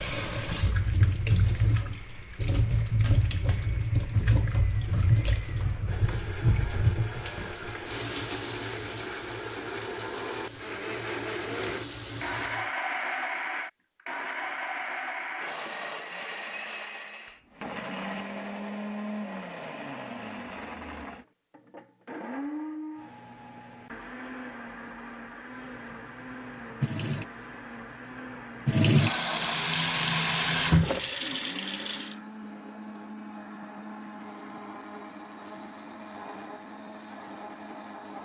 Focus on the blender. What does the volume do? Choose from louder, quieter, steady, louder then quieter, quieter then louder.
louder then quieter.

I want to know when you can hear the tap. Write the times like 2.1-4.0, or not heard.
0.0-12.7, 25.5-32.1.